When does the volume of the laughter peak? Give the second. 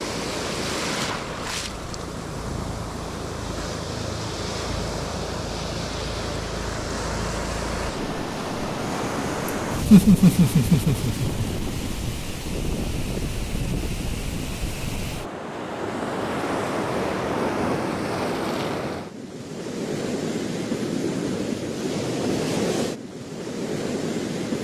10 s.